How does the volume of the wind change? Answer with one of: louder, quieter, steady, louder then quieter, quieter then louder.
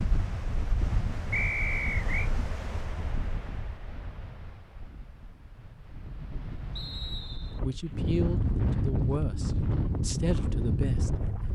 quieter then louder.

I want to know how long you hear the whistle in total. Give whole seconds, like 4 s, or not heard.
2 s.